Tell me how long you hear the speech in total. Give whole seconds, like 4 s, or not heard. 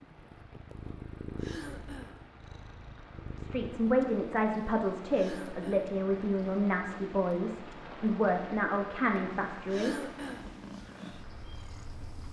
7 s.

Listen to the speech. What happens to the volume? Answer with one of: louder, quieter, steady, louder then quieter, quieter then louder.
steady.